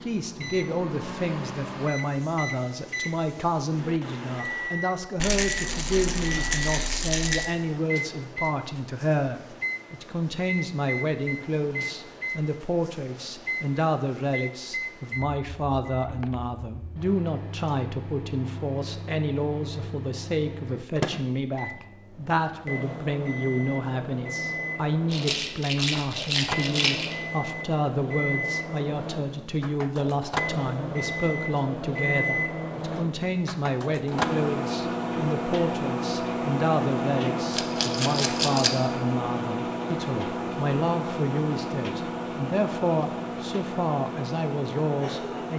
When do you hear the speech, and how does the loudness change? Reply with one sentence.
You can hear the speech from 0.0 to 45.5 s, at a steady volume.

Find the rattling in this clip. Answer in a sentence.
You can hear the rattling from 5.2 to 7.5 s, from 25.1 to 27.1 s and from 37.5 to 38.8 s.